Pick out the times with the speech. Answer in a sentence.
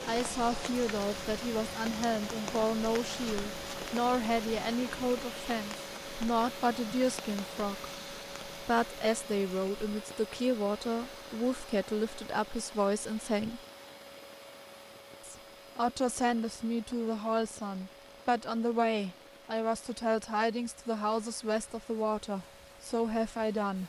You can hear the speech from 0.1 to 7.8 s, from 8.6 to 13.6 s and from 15.2 to 23.8 s.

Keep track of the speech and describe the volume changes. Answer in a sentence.
The volume of the speech stays about the same.